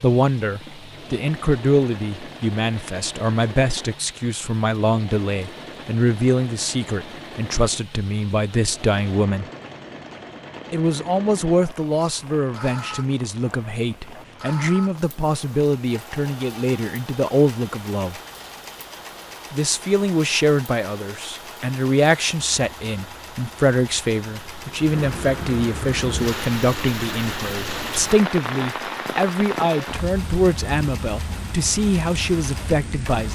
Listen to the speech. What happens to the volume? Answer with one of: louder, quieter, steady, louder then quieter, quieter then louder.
steady.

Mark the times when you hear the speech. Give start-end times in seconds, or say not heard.
0.0-9.4, 10.7-18.1, 19.5-33.2.